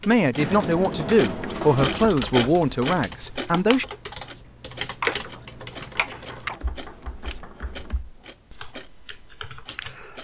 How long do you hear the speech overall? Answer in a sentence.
The speech can be heard for 4 seconds in total.